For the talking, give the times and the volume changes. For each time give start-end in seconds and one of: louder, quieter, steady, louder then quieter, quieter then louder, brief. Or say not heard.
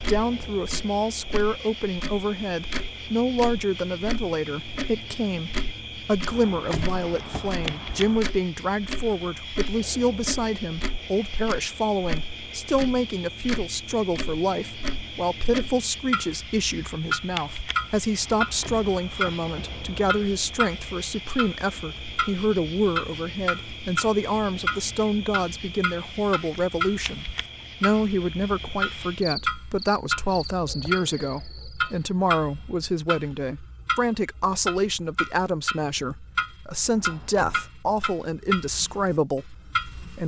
0.0-40.2 steady.